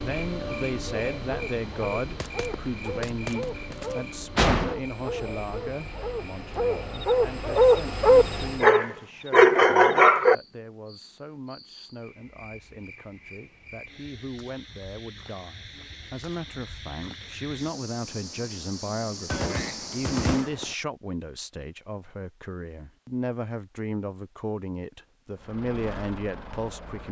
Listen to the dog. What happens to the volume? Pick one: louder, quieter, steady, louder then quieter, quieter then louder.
louder.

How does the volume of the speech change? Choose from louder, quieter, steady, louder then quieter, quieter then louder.
quieter then louder.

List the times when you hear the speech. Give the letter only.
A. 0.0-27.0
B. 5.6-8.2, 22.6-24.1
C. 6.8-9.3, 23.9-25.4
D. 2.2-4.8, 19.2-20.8
A.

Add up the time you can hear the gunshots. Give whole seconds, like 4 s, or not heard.
4 s.